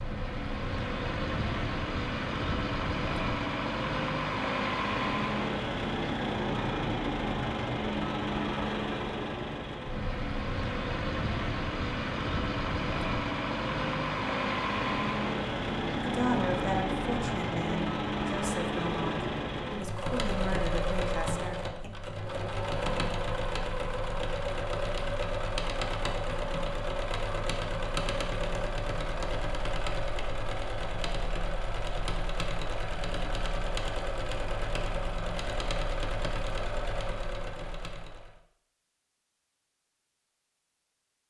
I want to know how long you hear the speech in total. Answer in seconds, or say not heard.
6 s.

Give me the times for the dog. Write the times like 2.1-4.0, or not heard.
not heard.